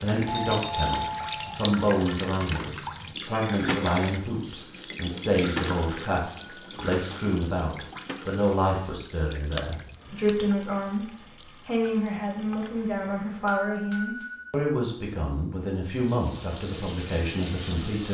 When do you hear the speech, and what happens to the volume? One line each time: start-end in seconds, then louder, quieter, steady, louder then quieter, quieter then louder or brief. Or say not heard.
0.0-18.0 steady.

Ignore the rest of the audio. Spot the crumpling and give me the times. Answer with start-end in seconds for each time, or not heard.
9.5-10.6.